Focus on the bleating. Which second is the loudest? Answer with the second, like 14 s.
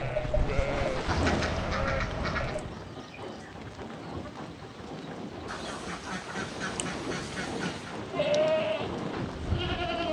8 s.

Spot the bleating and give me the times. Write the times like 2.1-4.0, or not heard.
0.0-2.7, 7.9-10.0.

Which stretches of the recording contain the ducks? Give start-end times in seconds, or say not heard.
1.1-2.6, 5.5-8.0.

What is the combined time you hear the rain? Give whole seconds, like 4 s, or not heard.
10 s.